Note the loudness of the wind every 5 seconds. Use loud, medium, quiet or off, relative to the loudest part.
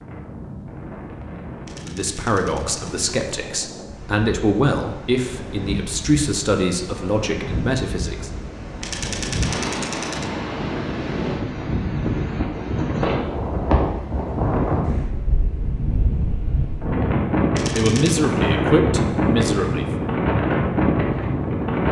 quiet, medium, loud, loud, loud.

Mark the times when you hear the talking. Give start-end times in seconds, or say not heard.
1.9-8.3, 17.8-19.9.